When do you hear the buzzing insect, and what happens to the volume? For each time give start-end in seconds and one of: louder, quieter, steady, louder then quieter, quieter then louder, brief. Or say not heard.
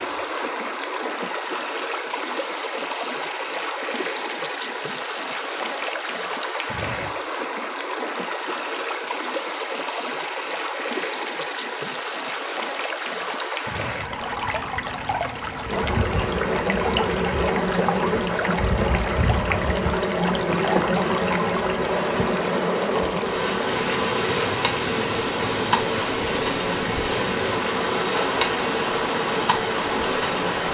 15.7-30.6 steady.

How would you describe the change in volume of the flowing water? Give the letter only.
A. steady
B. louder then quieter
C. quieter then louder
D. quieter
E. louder
A.